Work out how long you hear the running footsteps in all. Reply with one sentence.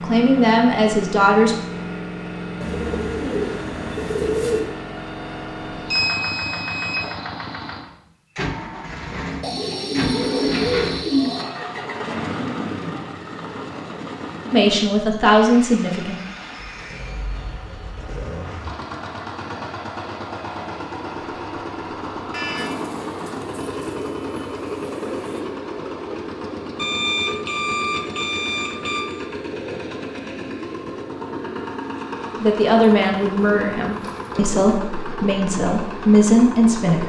You can't hear the running footsteps here.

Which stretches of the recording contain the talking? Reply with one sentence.
The talking can be heard from 0.0 to 1.6 s, from 14.5 to 16.2 s and from 32.4 to 37.0 s.